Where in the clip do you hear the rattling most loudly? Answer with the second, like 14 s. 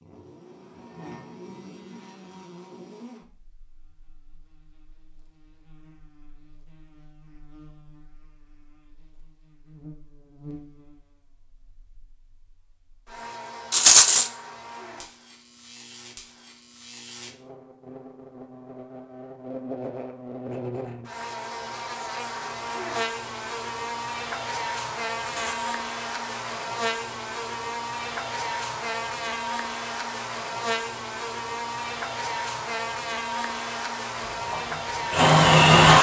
14 s.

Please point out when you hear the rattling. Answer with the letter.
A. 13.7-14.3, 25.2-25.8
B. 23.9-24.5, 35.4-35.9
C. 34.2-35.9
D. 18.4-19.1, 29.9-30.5
A.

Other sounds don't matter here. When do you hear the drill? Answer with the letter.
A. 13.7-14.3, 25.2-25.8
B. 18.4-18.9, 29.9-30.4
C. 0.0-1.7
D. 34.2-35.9
D.